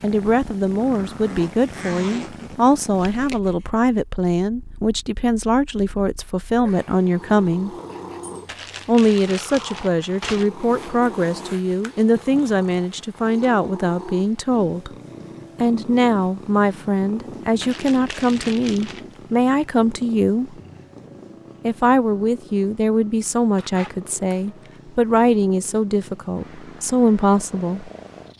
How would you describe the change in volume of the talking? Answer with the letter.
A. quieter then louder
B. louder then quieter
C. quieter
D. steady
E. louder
D.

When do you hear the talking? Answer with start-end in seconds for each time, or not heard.
0.0-7.7, 8.8-14.9, 15.6-20.6, 21.6-27.9.